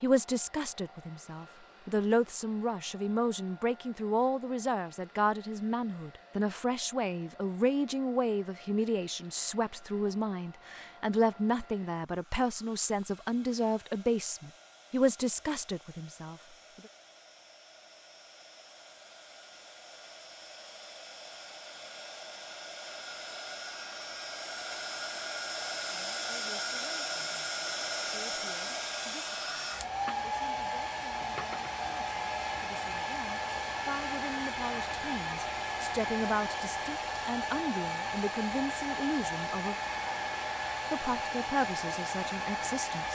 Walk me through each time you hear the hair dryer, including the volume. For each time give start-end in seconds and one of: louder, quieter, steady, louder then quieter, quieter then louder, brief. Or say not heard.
0.0-43.0 louder.